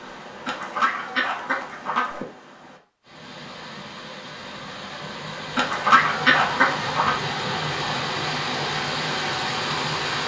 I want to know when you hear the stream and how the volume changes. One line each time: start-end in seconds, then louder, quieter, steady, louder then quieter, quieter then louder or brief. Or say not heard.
0.0-10.2 louder.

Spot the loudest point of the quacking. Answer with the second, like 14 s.
6 s.